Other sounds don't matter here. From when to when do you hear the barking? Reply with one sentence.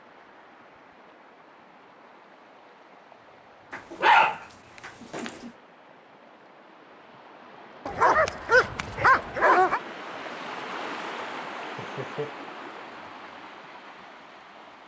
The barking can be heard from 3.7 to 5.5 s and from 7.8 to 9.8 s.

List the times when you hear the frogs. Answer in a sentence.
You can't hear the frogs here.